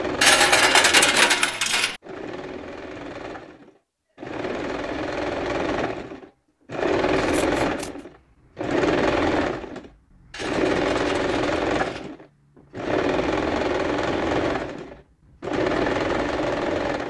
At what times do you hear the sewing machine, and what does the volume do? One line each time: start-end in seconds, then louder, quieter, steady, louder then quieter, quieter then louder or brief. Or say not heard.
0.0-17.0 louder.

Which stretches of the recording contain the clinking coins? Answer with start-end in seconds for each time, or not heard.
0.2-1.9, 10.3-12.1.